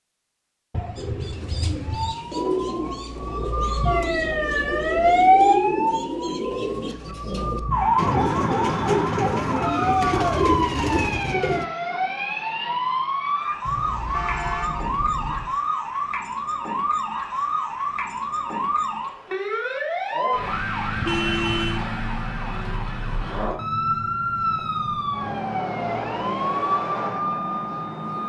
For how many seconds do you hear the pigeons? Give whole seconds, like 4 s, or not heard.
11 s.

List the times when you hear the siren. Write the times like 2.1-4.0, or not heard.
1.9-28.2.